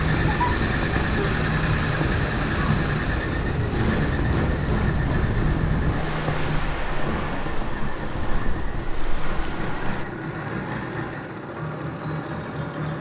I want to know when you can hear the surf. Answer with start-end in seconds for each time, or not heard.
0.1-10.1.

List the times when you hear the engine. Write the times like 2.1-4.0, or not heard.
0.0-12.9.